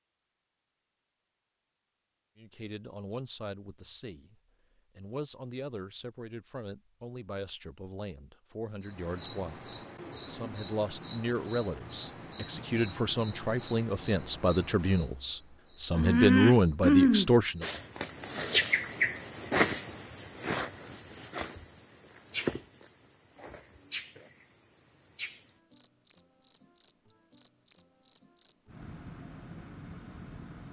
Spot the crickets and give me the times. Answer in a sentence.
The crickets can be heard from 8.8 to 30.6 s.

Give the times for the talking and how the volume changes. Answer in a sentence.
The talking can be heard briefly from 2.4 to 4.3 s; and from 5.0 to 17.6 s, getting louder.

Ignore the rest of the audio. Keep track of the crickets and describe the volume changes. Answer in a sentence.
The loudness of the crickets goes up, then down.